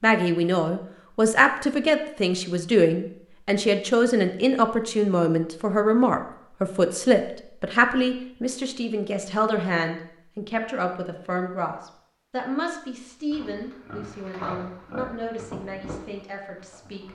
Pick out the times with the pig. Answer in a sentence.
You can hear the pig from 13.3 to 17.1 s.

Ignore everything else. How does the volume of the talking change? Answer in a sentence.
The volume of the talking goes down.